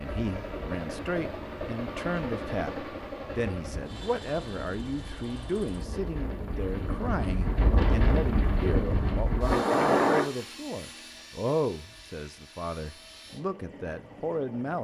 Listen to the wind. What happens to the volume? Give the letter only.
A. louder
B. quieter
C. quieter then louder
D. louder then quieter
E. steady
A.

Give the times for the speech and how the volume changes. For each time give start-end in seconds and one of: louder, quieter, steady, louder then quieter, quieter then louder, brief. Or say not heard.
0.0-14.7 steady.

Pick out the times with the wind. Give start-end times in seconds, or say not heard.
0.1-10.2.